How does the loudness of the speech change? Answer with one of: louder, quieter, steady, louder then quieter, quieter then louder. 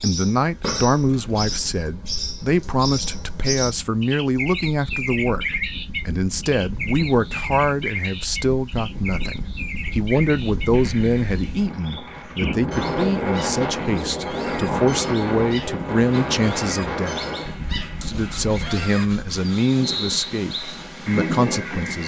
steady.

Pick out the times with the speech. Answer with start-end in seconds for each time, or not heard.
0.0-17.2, 18.0-22.0.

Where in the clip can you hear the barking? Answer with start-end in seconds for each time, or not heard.
not heard.